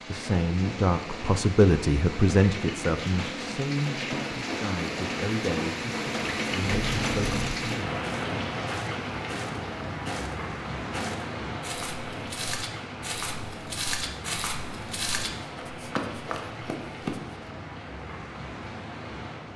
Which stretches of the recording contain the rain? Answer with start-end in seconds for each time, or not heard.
0.0-19.5.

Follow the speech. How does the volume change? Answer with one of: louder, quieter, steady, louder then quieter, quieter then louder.
quieter.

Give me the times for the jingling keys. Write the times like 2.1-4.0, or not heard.
6.7-7.7.